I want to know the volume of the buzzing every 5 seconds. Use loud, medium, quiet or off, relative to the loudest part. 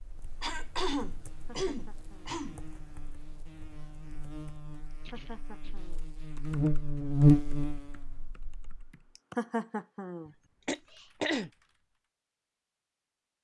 quiet, loud, off.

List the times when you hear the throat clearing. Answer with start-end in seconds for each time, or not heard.
0.4-2.6, 5.0-5.8, 10.7-11.5.